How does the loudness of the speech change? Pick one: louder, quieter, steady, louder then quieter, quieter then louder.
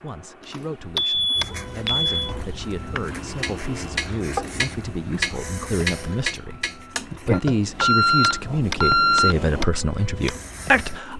louder.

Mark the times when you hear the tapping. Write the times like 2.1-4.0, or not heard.
0.9-10.3.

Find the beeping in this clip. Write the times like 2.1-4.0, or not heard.
0.5-2.1, 7.3-9.3.